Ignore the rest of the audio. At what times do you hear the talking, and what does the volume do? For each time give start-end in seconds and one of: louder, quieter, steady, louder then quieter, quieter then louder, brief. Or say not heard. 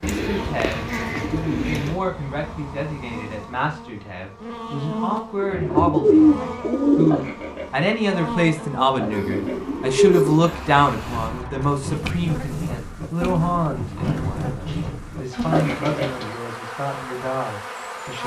0.0-18.2 louder then quieter.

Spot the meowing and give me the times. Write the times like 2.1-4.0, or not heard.
not heard.